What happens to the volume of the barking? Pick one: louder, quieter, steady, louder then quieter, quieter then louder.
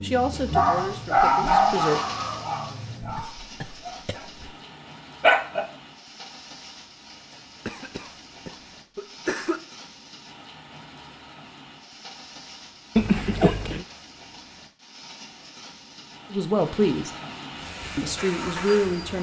quieter.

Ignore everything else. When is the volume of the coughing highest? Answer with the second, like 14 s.
13 s.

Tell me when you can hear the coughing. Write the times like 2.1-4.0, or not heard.
3.0-4.5, 7.7-9.6, 12.9-13.8.